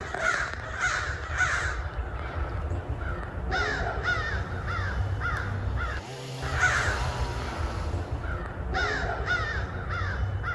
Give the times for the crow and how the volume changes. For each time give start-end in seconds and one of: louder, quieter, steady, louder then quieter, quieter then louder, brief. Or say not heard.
0.0-10.5 steady.